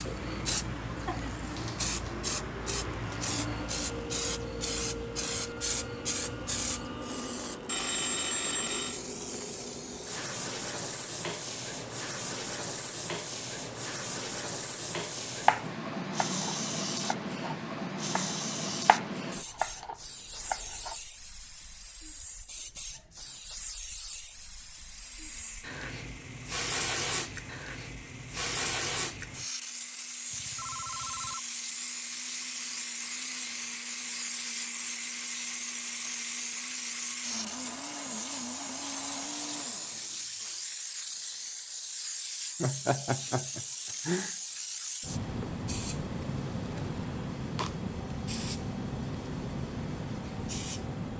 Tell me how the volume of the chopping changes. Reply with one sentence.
The loudness of the chopping goes up.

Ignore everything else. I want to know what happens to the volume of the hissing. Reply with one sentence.
The volume of the hissing stays about the same.